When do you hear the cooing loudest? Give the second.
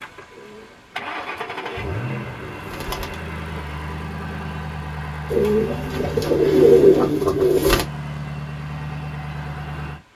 7 s.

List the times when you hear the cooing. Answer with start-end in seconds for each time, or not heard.
0.3-3.1, 5.3-7.8.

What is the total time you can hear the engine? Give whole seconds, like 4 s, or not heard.
10 s.